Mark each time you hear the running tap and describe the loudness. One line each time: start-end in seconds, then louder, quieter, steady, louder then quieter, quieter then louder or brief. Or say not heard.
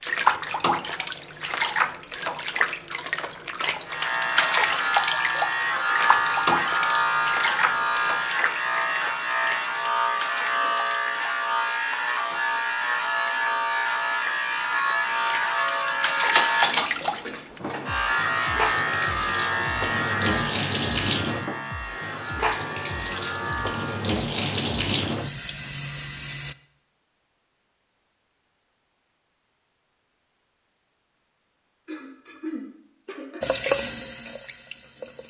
0.0-26.6 quieter then louder
33.4-35.2 brief.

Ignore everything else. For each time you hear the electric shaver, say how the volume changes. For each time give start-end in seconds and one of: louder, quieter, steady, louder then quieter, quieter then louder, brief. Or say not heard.
3.9-24.1 quieter.